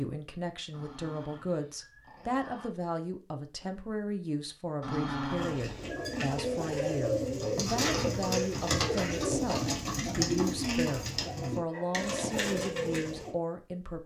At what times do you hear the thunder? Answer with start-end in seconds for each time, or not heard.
not heard.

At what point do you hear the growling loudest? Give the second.
5 s.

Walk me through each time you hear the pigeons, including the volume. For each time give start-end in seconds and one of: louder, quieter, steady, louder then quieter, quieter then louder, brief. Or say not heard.
5.3-13.3 steady.